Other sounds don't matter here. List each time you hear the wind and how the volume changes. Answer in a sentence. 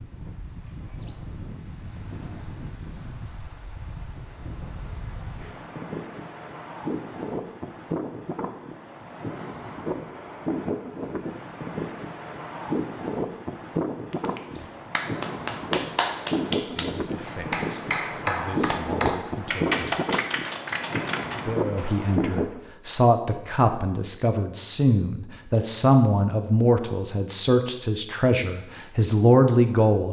The wind can be heard from 0.0 to 22.6 s, getting louder.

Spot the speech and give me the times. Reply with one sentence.
The speech can be heard from 16.6 to 19.8 s and from 21.4 to 30.0 s.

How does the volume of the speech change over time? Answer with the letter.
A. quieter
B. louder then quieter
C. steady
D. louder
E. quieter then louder
D.